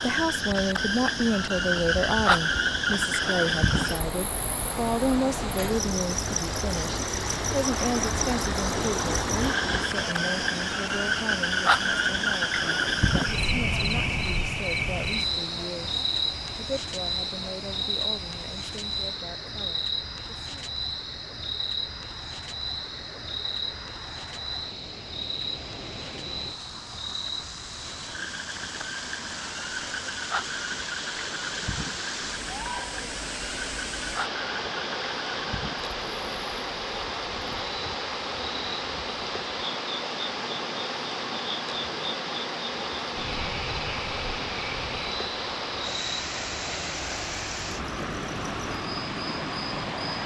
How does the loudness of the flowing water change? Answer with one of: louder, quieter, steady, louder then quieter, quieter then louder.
quieter then louder.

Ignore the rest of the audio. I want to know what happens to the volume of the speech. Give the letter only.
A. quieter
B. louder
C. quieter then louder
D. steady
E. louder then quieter
A.